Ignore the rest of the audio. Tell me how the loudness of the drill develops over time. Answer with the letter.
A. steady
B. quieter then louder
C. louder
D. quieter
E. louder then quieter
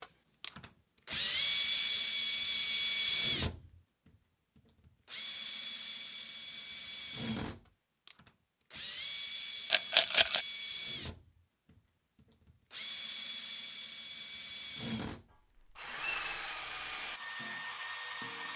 D.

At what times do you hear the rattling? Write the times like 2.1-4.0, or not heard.
9.7-10.4.